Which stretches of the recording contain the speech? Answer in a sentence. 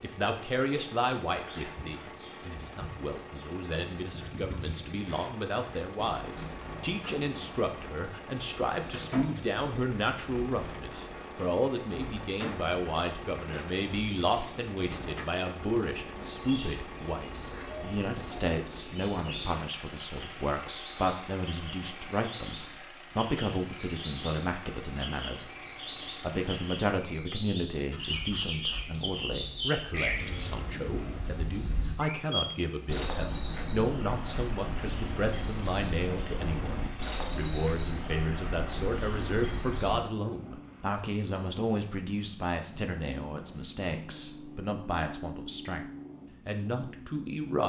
The speech can be heard from 0.0 to 25.5 s and from 26.2 to 47.6 s.